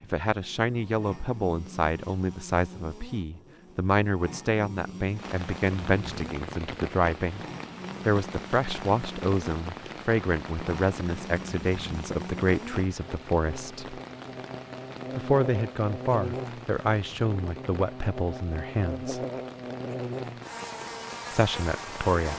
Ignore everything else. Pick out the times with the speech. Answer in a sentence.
The speech can be heard from 0.0 to 7.5 s, from 8.1 to 14.0 s, from 15.2 to 19.2 s and from 21.3 to 22.3 s.